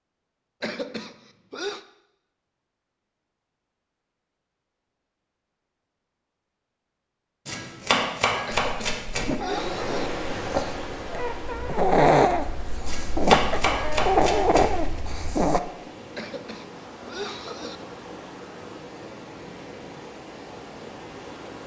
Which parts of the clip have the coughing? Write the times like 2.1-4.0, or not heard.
0.6-1.9, 8.4-10.1, 16.1-17.8.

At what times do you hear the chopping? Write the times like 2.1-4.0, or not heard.
7.5-9.3, 12.8-14.7.